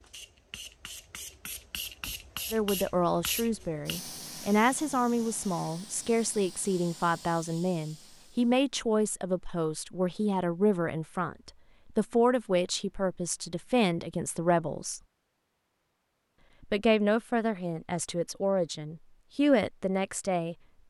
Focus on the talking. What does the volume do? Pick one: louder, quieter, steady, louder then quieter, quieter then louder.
steady.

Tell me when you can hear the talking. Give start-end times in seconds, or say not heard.
2.5-15.0, 16.7-20.6.